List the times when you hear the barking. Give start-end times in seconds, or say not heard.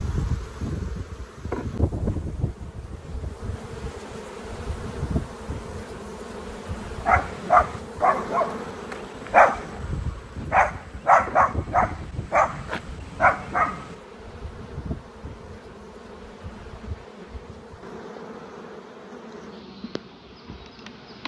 7.0-13.9.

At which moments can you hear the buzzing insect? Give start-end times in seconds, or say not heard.
0.0-21.2.